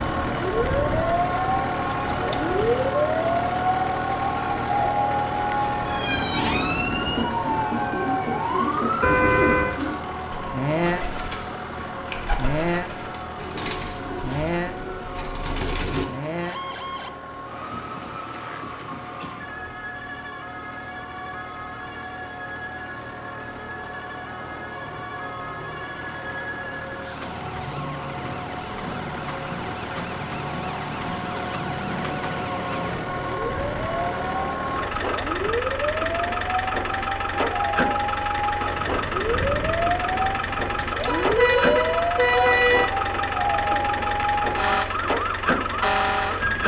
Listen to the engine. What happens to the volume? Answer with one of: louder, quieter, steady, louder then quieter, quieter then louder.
quieter then louder.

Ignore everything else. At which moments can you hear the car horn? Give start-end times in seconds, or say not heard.
9.0-9.8, 41.0-43.0.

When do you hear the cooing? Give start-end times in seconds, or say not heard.
6.2-16.1.